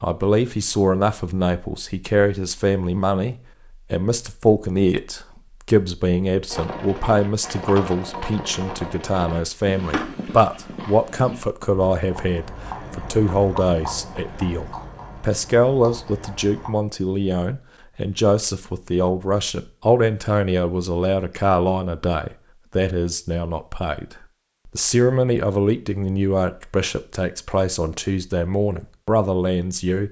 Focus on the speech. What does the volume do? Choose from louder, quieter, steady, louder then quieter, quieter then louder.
steady.